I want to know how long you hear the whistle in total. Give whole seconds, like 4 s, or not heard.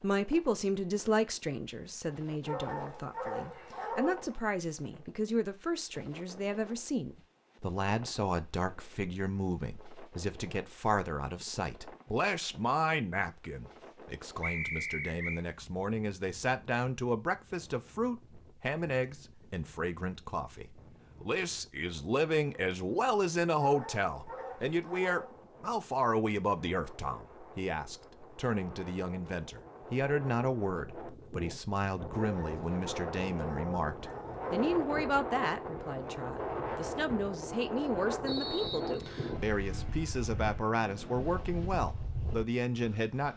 2 s.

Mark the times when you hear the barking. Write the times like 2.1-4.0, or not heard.
2.5-4.4, 23.6-25.4, 32.1-34.5.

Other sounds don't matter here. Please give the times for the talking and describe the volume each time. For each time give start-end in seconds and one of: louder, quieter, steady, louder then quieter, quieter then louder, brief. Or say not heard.
0.0-43.3 steady.